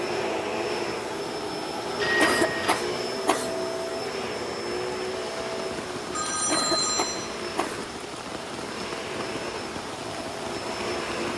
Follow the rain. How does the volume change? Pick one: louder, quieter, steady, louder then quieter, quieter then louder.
steady.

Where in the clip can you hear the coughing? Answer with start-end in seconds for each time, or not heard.
2.2-3.5, 6.5-7.8.